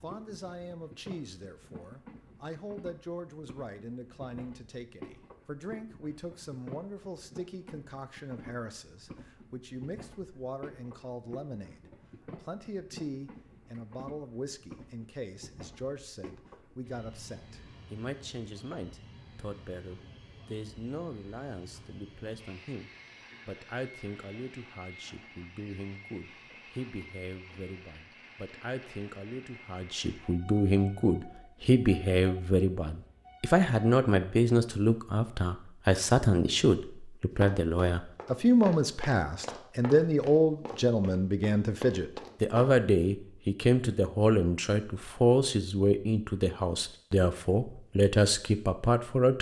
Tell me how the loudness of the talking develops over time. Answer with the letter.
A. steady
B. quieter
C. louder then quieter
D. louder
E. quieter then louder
D.